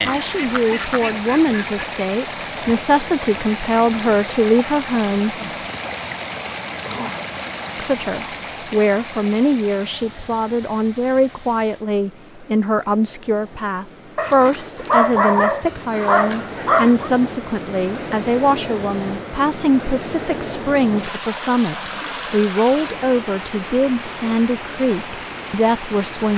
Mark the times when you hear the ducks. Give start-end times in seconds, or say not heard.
0.0-1.8.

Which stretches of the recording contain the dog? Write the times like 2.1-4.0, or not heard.
14.2-17.1.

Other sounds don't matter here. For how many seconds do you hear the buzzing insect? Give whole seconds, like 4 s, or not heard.
not heard.